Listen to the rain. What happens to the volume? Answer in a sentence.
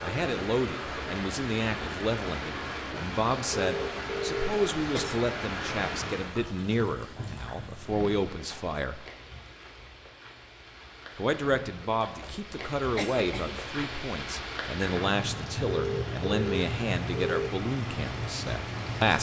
The loudness of the rain goes down, then up.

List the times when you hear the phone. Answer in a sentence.
You can hear the phone from 3.5 to 5.1 s and from 15.7 to 17.5 s.